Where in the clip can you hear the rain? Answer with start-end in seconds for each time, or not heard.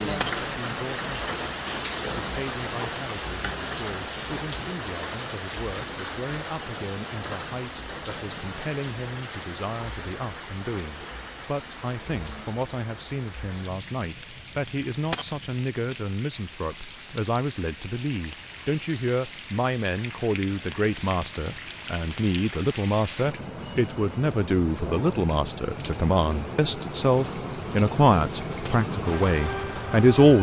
0.0-30.3.